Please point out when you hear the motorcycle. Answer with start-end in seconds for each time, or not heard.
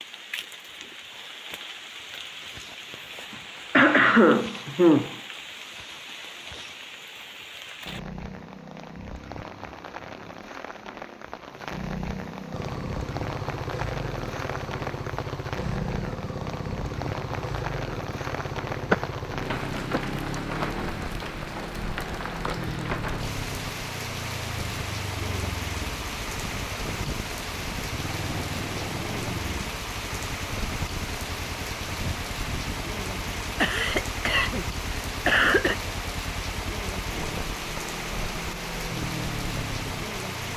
12.5-40.5.